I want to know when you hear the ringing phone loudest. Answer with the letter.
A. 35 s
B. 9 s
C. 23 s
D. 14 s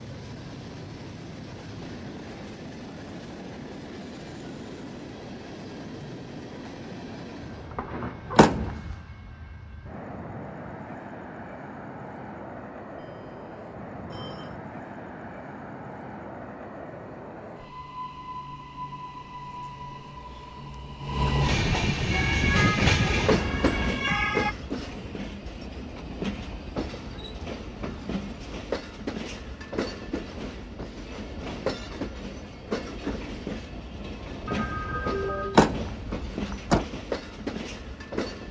A.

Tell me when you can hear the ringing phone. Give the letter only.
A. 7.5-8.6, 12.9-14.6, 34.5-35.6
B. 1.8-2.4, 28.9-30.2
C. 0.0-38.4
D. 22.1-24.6
A.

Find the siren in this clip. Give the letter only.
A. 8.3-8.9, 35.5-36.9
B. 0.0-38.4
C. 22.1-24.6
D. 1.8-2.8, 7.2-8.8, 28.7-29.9
C.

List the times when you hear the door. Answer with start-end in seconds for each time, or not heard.
8.3-8.9, 35.5-36.9.